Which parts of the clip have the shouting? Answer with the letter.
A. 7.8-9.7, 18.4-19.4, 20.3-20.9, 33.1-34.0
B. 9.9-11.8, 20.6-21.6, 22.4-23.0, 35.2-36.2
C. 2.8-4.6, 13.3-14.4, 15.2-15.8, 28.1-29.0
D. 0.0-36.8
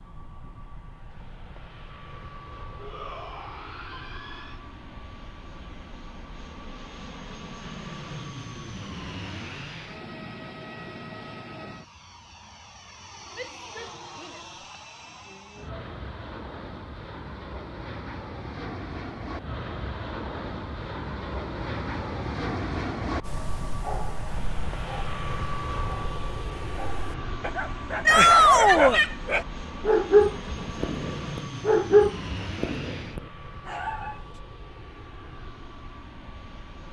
C.